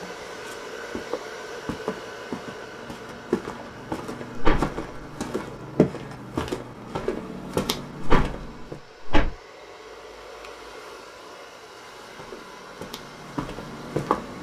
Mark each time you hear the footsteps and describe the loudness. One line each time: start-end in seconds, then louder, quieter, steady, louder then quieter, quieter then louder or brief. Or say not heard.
0.0-8.8 louder
11.8-14.3 brief.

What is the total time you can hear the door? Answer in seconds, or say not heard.
2 s.